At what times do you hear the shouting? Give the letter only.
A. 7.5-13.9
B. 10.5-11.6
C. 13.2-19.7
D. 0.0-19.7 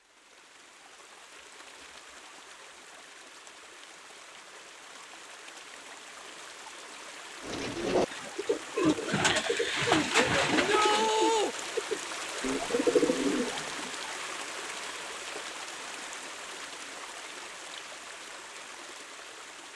B.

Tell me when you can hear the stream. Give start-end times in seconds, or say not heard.
0.0-19.7.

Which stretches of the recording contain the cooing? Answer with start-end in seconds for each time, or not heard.
7.5-13.9.